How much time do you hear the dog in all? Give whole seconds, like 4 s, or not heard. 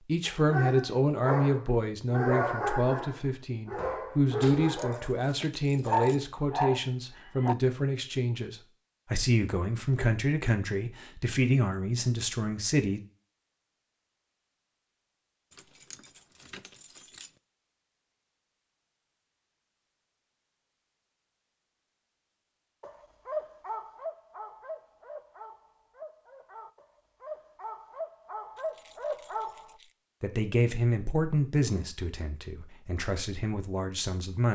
14 s.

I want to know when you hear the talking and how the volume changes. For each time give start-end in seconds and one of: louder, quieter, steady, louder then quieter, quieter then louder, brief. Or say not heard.
0.1-13.0 steady
30.2-34.5 quieter then louder.